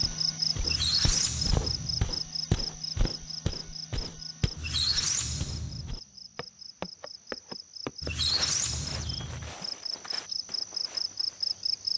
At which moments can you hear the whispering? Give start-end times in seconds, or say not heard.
not heard.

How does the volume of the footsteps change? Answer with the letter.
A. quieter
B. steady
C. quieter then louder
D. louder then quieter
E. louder
A.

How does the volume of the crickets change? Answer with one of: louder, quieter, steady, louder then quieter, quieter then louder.
quieter then louder.